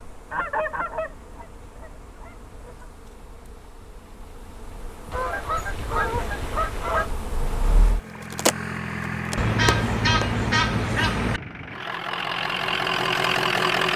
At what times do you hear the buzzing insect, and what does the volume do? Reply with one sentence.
The buzzing insect can be heard from 0.0 to 10.4 s, getting louder.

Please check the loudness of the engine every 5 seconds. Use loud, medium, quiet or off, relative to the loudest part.
off, medium, loud.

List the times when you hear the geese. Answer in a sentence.
You can hear the geese from 0.3 to 2.9 s, from 5.1 to 7.1 s and from 9.3 to 11.4 s.